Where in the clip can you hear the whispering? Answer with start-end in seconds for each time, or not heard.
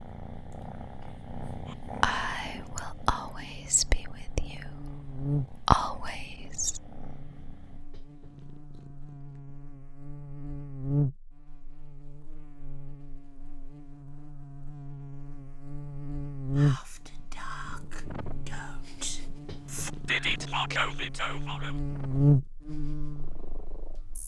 1.7-6.8, 16.6-21.8.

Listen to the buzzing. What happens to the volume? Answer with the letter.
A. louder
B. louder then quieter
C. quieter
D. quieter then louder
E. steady
D.